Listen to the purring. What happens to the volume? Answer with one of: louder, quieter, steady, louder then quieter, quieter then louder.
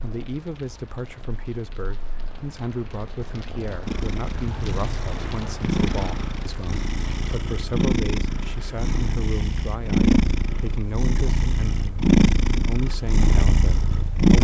louder.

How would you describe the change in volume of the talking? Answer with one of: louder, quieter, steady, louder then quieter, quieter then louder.
steady.